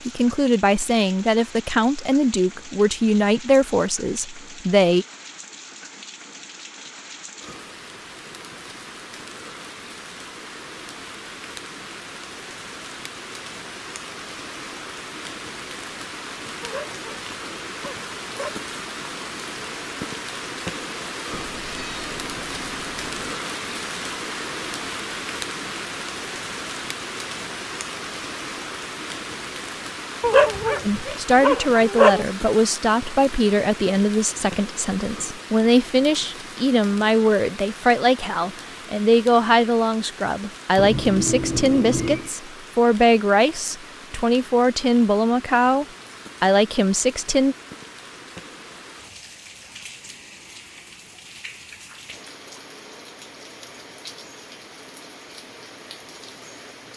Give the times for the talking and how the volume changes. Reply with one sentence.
The talking can be heard from 0.1 to 5.0 s, getting quieter; and from 30.9 to 47.5 s, at a steady volume.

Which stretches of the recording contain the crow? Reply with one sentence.
You can't hear the crow here.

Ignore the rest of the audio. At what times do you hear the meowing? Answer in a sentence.
The meowing can be heard from 21.3 to 23.3 s and from 40.8 to 42.3 s.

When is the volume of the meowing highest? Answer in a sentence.
The volume of the meowing peaks at 41 seconds.